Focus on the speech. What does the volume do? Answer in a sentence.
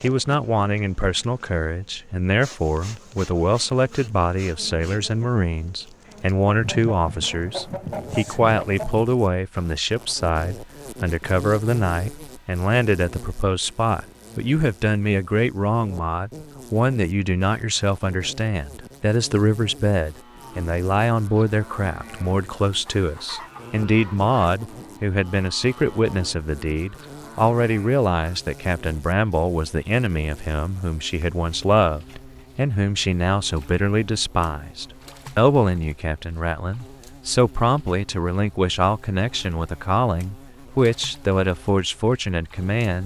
The loudness of the speech stays about the same.